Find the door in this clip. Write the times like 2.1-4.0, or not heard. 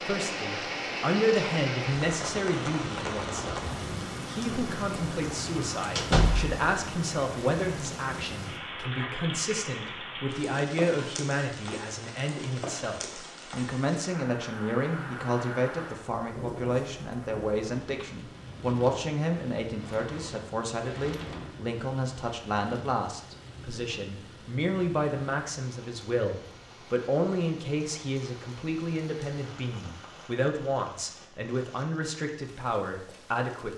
6.0-6.6, 19.8-21.4.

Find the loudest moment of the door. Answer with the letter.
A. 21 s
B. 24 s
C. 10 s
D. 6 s
D.